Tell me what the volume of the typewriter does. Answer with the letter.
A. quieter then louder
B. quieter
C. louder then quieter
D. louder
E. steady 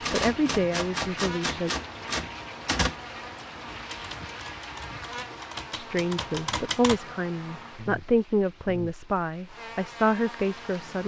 A.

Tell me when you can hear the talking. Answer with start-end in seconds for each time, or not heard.
0.1-1.7, 5.8-11.0.